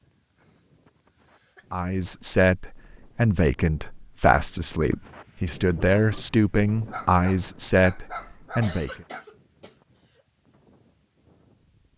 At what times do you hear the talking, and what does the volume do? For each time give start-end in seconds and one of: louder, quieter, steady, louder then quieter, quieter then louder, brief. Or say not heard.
1.7-8.9 steady.